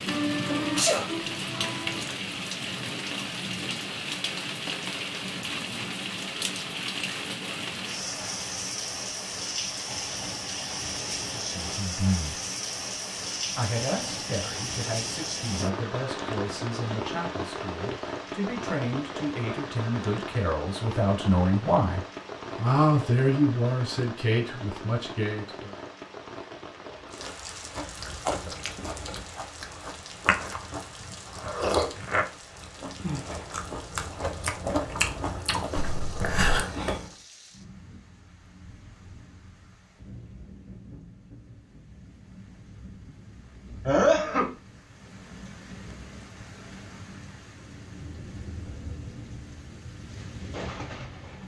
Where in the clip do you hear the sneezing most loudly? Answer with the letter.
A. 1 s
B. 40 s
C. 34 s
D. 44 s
D.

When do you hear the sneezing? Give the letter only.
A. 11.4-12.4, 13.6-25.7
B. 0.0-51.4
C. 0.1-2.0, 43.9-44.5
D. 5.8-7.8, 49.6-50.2
C.